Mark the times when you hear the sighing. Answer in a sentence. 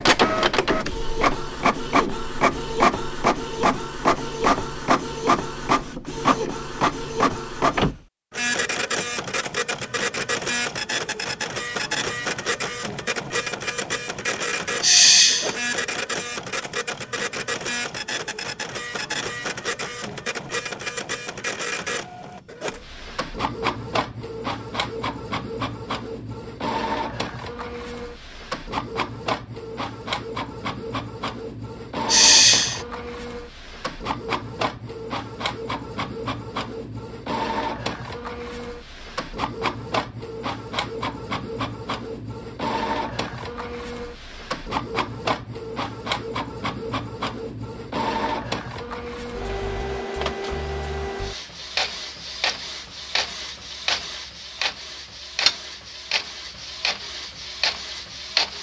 You can hear the sighing from 14.8 to 15.6 s and from 32.0 to 32.8 s.